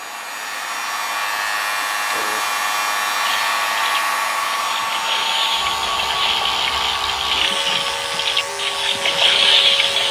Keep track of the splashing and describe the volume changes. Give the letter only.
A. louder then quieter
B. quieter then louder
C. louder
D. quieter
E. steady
C.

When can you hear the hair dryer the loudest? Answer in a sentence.
The volume of the hair dryer peaks at 4 seconds.